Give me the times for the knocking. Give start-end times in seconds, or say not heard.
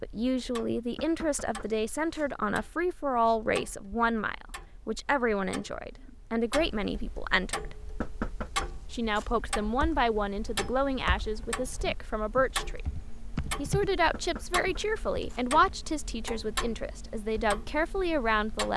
0.9-2.2, 8.0-9.2, 14.1-15.4.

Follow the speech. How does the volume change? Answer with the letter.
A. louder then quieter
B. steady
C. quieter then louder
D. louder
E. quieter
B.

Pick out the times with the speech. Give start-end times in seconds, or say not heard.
0.0-7.8, 8.9-12.8, 13.6-18.7.